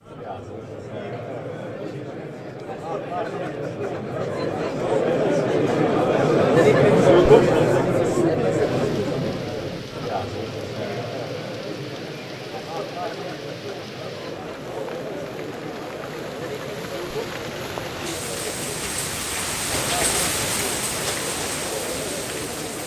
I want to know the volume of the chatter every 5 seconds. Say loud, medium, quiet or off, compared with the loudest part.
medium, loud, quiet, quiet, quiet.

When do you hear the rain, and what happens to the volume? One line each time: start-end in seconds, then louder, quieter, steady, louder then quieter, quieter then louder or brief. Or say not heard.
8.6-22.8 louder.